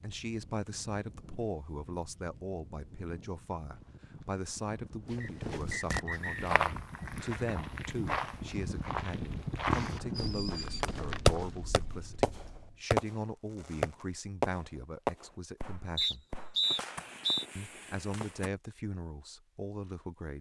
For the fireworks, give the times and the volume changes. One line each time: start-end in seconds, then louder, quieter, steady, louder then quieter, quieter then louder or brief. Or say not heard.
10.2-18.5 quieter.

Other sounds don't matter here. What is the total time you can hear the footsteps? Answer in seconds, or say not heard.
8 s.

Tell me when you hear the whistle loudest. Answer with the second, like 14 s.
17 s.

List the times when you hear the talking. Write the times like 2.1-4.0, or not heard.
0.0-16.2, 17.6-20.3.